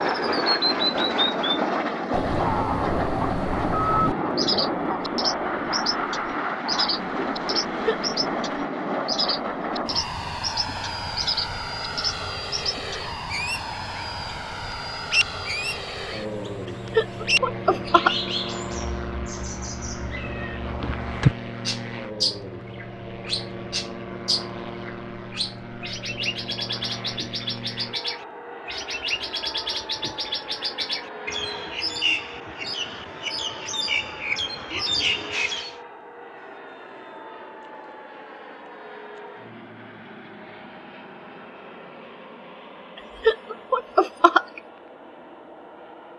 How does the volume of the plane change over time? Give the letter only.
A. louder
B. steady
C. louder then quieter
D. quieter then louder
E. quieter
E.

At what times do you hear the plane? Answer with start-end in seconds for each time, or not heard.
0.0-46.1.